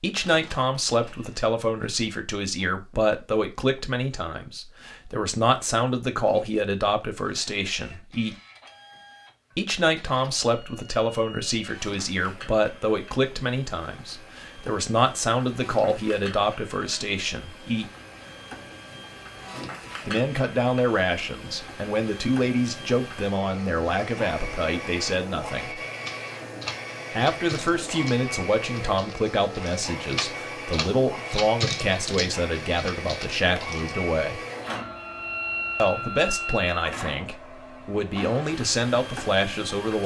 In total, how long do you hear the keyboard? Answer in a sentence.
You can hear the keyboard for 8 seconds altogether.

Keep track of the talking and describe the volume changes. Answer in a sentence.
The loudness of the talking stays about the same.